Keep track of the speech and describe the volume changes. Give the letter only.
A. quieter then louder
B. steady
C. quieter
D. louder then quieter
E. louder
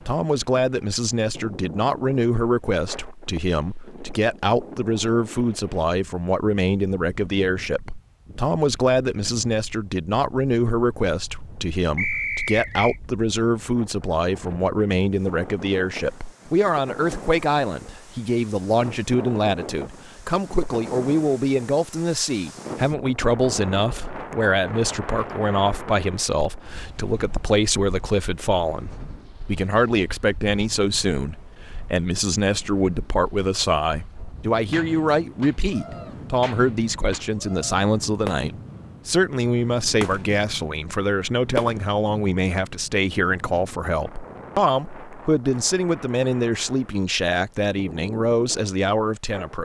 B.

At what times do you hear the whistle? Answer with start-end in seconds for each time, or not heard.
11.9-13.0.